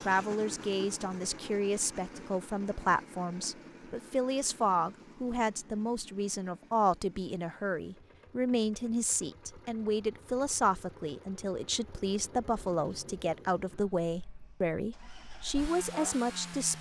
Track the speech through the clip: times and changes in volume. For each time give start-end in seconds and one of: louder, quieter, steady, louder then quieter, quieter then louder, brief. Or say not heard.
0.0-16.7 steady.